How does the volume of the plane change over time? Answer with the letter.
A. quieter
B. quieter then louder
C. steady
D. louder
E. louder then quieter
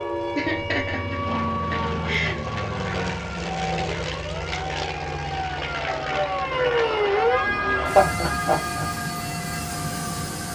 C.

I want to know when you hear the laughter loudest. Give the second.
8 s.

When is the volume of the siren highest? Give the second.
7 s.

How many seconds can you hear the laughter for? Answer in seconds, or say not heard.
3 s.